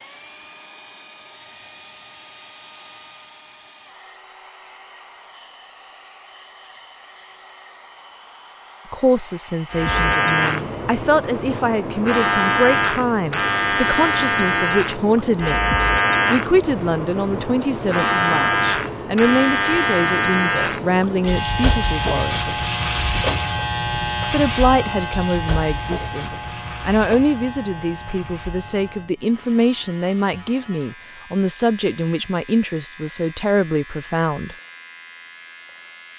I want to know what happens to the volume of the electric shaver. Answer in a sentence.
The volume of the electric shaver goes down.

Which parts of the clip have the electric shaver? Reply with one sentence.
You can hear the electric shaver from 9.7 to 36.1 s.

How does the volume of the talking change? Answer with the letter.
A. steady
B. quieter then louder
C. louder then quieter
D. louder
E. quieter
A.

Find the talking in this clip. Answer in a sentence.
The talking can be heard from 8.9 to 22.6 s and from 24.3 to 34.5 s.